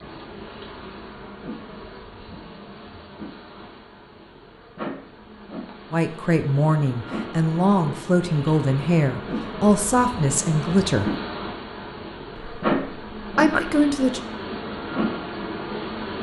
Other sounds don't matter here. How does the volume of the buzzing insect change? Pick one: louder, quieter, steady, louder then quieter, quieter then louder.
louder.